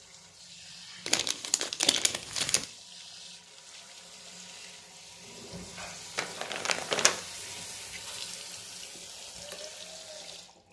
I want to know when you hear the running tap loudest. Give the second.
8 s.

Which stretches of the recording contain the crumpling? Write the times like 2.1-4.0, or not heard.
1.1-2.6, 6.2-7.2.